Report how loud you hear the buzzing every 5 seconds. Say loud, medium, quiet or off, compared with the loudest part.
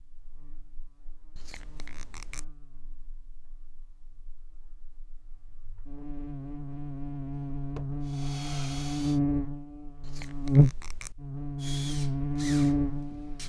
quiet, medium, loud.